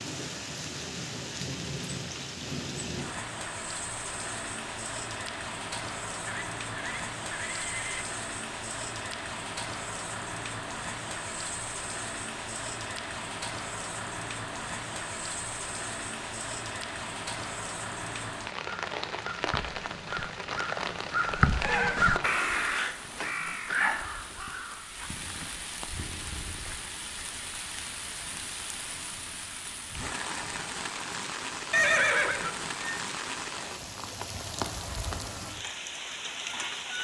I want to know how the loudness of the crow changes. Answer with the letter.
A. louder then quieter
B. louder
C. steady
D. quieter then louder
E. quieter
A.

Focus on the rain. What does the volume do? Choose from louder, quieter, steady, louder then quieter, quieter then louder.
steady.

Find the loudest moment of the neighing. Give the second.
32 s.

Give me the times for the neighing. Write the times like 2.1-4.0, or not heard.
6.2-8.1, 21.4-22.1, 31.7-33.0.